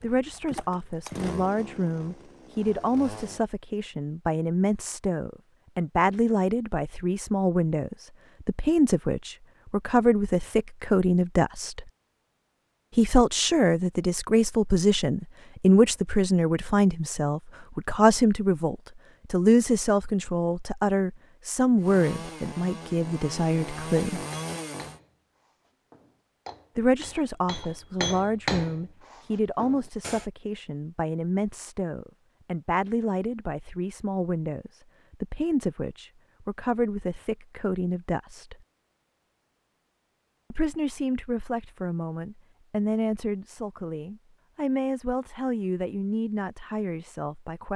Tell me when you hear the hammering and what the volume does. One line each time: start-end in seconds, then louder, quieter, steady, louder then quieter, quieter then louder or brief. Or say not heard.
24.3-30.2 louder then quieter.